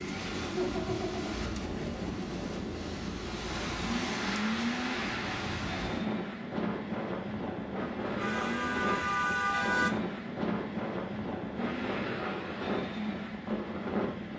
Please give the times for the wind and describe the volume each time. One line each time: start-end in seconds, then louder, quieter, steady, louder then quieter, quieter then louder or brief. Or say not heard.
0.0-14.3 steady.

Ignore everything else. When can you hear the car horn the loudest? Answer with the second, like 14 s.
10 s.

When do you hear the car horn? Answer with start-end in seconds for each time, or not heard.
8.2-10.0.